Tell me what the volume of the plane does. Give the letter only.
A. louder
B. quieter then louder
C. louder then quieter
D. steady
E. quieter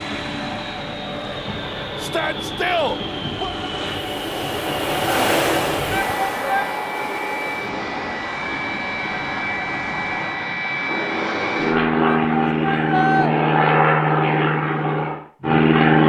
A.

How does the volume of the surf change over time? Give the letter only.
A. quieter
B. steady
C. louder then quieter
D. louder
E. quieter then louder
C.